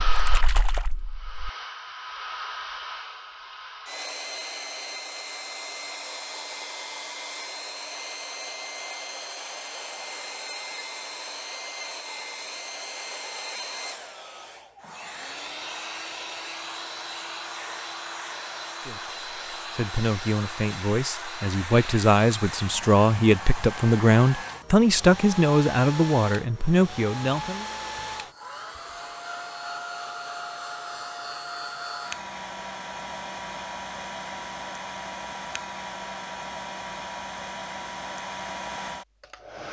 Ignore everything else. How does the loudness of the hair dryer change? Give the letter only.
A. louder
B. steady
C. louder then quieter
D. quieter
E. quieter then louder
B.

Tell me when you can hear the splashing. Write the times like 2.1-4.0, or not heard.
0.0-1.5.